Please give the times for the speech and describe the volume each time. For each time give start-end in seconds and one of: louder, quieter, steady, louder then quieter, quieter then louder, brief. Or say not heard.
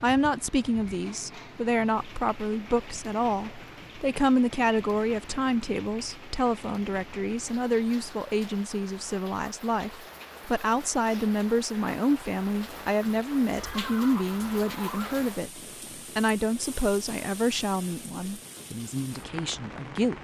0.0-20.1 steady.